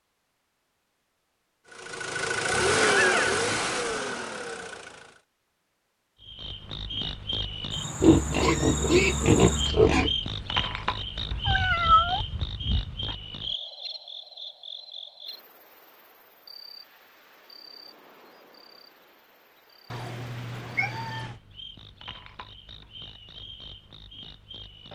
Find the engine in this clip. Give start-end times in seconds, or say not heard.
1.6-5.2.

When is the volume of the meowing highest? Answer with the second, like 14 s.
12 s.